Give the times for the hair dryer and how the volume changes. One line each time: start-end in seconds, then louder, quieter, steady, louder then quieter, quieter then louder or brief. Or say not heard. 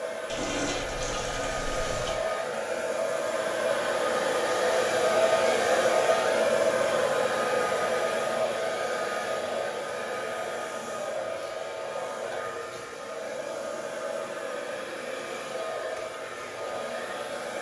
0.0-17.5 louder then quieter.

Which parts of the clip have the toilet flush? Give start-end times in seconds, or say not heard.
0.2-2.2.